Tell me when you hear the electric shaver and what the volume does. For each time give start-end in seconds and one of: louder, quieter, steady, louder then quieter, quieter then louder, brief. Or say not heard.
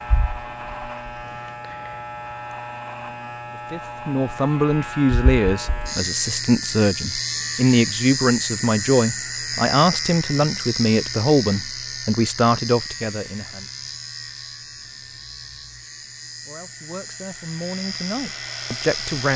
0.0-19.3 louder then quieter.